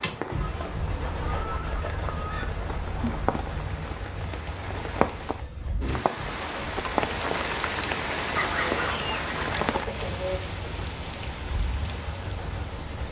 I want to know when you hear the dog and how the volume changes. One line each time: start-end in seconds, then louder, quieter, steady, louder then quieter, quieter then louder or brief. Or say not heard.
not heard.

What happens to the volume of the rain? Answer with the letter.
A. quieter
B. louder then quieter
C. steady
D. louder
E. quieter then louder
B.